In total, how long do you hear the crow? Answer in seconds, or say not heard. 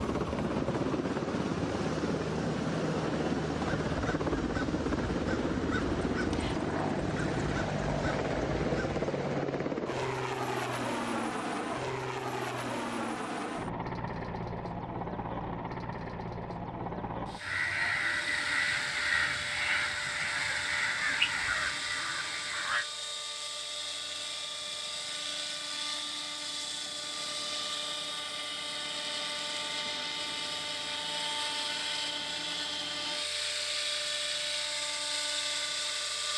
11 s.